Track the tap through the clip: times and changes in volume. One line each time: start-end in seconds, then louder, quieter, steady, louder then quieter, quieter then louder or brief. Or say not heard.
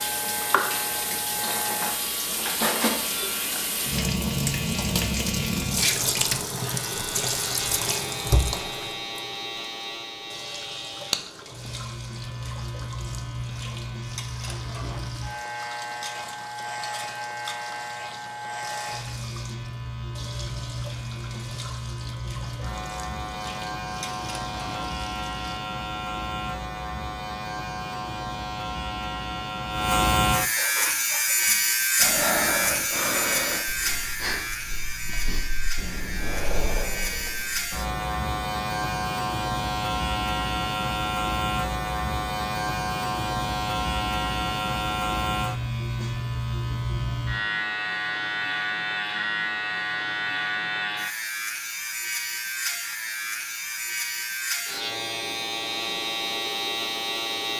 0.0-25.6 quieter.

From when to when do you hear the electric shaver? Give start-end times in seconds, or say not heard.
0.0-57.5.